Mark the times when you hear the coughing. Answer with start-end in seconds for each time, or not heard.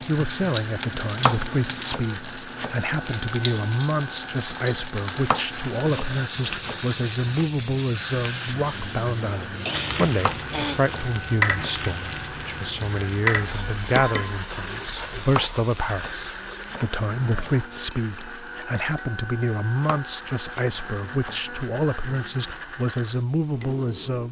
9.4-10.8.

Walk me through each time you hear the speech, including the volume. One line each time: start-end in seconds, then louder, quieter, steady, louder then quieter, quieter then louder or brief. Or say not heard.
0.0-24.2 steady.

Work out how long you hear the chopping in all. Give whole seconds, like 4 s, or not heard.
9 s.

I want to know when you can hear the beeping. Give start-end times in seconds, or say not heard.
not heard.